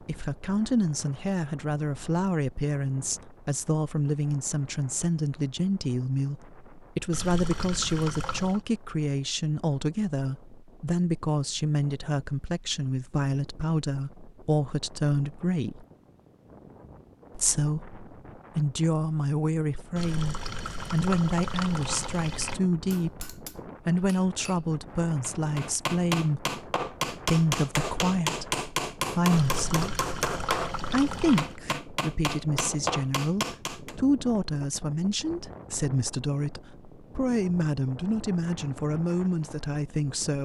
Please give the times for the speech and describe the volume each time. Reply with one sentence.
The speech can be heard from 0.0 to 15.8 s, at a steady volume; from 17.4 to 29.9 s, at a steady volume; and from 30.9 to 40.4 s, at a steady volume.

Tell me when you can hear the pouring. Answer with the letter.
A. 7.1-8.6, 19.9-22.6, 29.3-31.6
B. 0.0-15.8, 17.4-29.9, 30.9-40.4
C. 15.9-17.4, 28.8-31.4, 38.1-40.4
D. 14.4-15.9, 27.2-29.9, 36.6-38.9
A.